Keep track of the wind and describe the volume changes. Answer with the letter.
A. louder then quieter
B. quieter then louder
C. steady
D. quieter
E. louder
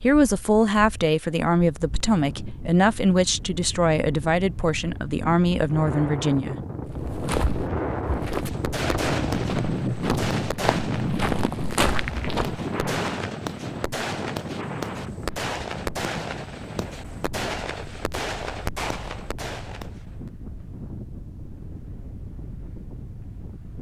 A.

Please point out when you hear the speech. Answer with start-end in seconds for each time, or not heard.
0.0-6.6.